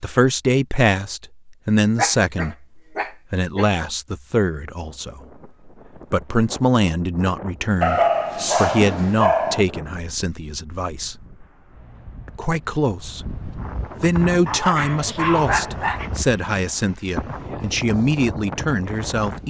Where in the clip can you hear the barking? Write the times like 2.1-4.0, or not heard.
1.9-3.7, 7.8-9.7, 14.4-16.1.